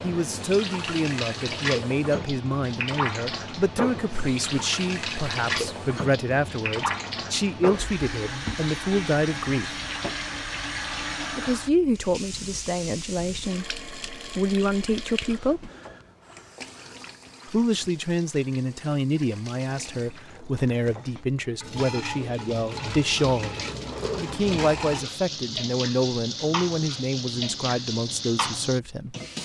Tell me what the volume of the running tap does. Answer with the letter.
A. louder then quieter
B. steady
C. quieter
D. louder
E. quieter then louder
E.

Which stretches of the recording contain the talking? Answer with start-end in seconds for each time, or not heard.
0.0-9.8, 11.3-15.7, 17.5-29.1.